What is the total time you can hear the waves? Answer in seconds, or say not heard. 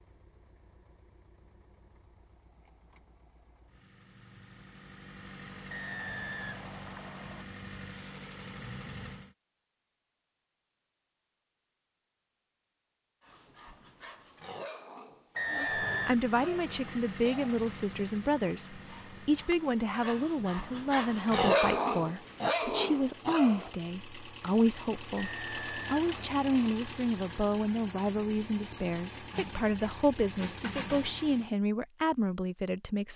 not heard.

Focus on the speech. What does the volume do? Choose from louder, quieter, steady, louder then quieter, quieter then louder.
steady.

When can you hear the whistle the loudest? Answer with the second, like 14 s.
16 s.